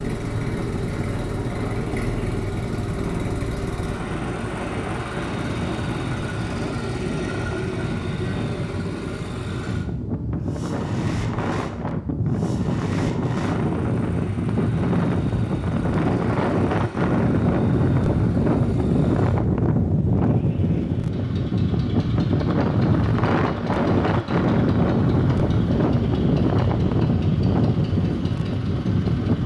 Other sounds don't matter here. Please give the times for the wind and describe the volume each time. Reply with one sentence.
You can hear the wind from 0.0 to 29.4 s, getting louder.